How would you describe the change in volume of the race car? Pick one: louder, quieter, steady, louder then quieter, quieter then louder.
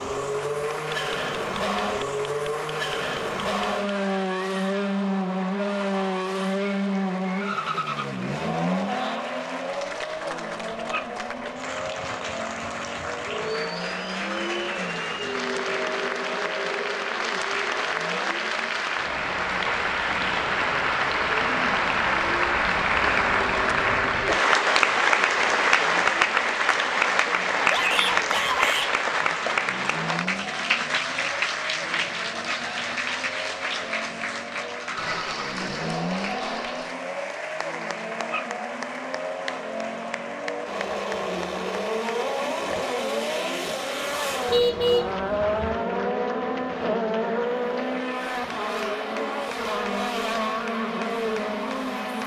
quieter then louder.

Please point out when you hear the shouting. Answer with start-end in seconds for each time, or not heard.
27.7-28.9.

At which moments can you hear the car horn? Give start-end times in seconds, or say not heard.
44.5-45.8.